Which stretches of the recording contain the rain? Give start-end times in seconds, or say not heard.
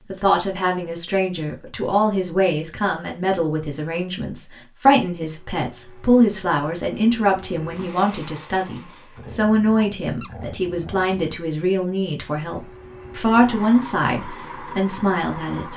not heard.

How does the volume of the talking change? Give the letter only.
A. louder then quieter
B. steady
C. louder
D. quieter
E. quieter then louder
B.